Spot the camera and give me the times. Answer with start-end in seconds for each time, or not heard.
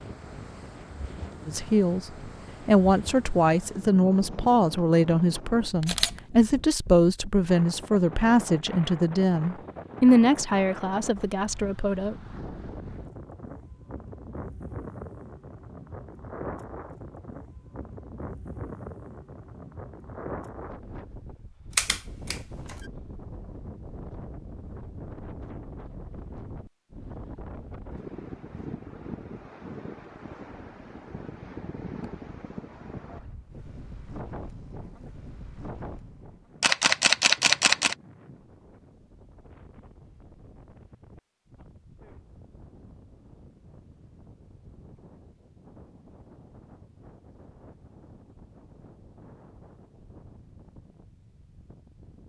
5.8-6.2, 21.8-22.8, 36.6-38.0.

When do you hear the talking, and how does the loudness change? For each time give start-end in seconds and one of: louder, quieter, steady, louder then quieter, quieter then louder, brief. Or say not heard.
1.4-2.0 brief
2.6-12.2 steady.